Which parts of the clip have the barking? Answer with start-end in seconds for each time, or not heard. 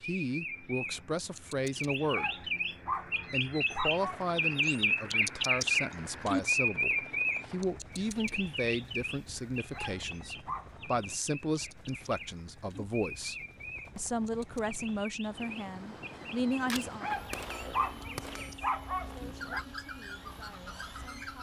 2.0-4.3, 9.6-11.0, 16.8-19.6.